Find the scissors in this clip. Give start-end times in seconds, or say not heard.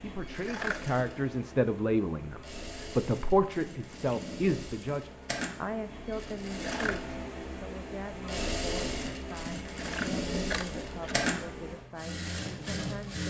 0.5-0.9, 6.6-7.2, 9.8-11.2.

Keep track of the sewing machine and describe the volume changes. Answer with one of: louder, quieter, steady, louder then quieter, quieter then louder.
louder.